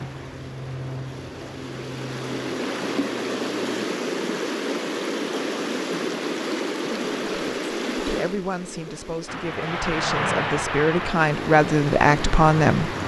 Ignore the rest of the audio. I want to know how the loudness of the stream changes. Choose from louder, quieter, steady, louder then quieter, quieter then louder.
louder then quieter.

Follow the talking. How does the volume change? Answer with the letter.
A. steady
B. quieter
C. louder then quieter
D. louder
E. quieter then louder
D.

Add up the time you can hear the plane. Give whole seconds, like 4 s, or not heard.
8 s.